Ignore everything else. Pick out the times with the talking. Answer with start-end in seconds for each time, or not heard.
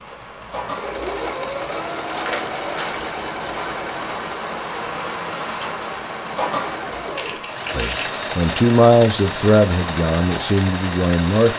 7.7-11.5.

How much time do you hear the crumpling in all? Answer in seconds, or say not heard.
2 s.